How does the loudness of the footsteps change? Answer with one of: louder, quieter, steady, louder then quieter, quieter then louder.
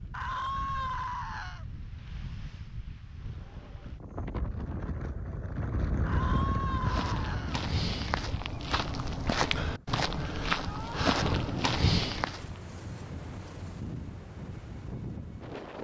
louder.